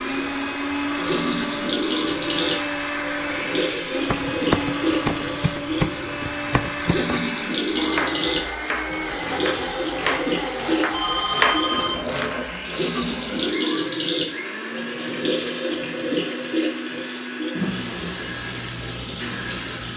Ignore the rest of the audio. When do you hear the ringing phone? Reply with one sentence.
You can hear the ringing phone from 10.9 to 12.1 s.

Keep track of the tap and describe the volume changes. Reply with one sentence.
The loudness of the tap stays about the same.